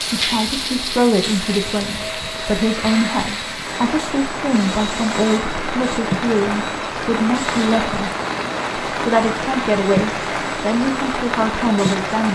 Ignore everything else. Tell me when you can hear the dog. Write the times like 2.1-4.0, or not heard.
not heard.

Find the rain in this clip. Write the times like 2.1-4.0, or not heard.
0.0-12.2.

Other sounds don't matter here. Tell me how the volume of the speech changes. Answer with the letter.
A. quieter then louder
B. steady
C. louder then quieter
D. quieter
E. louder
B.